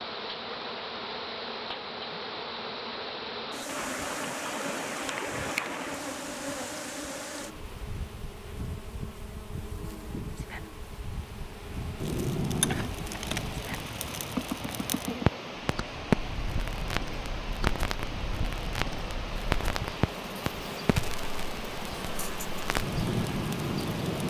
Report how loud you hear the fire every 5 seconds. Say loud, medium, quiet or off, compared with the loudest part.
off, off, loud, loud, loud.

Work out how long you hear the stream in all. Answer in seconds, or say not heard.
24 s.